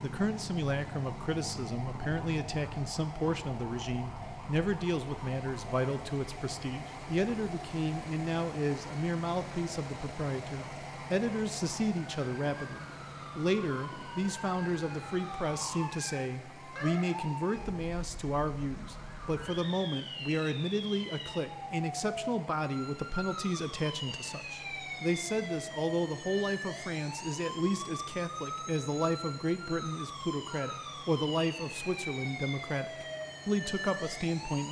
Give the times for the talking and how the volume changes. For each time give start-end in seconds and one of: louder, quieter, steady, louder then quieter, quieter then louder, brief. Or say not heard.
0.0-34.6 steady.